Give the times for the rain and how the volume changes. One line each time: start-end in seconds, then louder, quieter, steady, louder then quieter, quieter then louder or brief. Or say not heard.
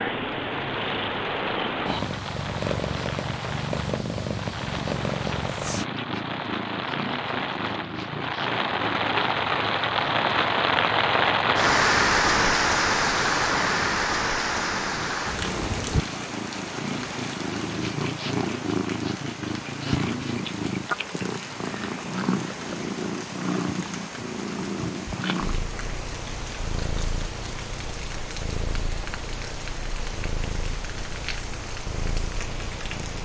0.0-33.2 louder then quieter.